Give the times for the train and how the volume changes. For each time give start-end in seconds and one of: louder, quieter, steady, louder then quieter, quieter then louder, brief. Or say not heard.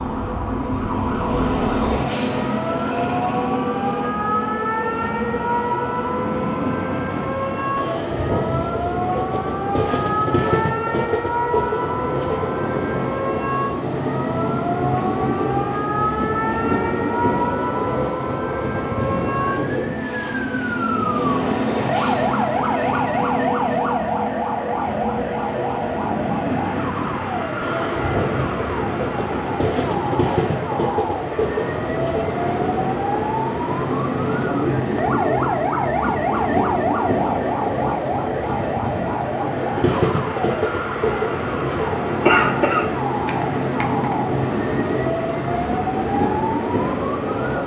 0.0-47.6 steady.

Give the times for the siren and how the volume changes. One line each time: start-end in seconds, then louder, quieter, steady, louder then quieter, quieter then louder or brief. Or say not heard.
0.0-47.6 steady.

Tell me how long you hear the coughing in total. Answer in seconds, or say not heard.
2 s.